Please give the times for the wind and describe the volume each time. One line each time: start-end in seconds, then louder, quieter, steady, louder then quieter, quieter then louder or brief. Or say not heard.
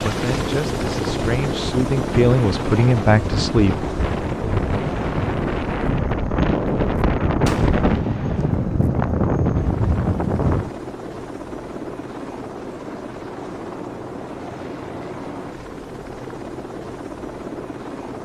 0.2-10.7 louder.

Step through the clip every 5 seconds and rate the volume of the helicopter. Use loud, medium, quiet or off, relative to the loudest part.
loud, medium, medium, medium.